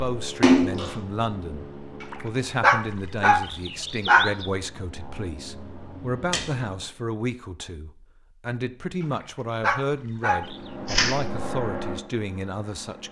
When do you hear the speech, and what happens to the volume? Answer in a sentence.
You can hear the speech from 0.0 to 13.0 s, at a steady volume.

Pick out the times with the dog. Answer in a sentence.
The dog can be heard from 2.0 to 4.5 s and from 9.0 to 10.6 s.